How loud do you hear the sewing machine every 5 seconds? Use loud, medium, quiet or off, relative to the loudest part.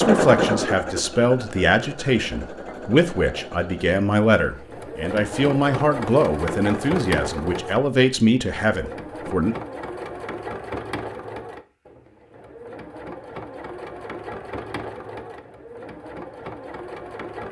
loud, loud, medium, medium.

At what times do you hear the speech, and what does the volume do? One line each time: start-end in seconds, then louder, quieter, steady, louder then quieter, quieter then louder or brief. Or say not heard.
0.0-9.6 steady.